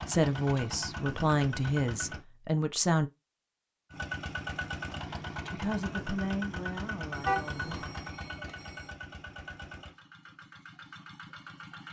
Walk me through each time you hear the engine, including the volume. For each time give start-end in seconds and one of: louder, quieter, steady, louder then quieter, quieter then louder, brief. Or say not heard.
0.0-2.2 brief
3.9-11.8 quieter.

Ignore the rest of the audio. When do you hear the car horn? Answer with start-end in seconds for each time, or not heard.
7.2-7.9.